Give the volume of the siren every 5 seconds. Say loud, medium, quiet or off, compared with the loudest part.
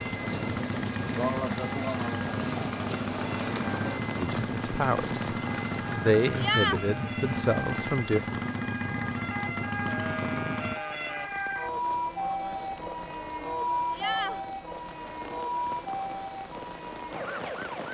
medium, medium, loud, loud.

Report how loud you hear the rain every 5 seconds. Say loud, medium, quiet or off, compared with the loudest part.
loud, loud, medium, medium.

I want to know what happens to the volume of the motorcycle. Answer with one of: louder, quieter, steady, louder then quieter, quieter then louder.
steady.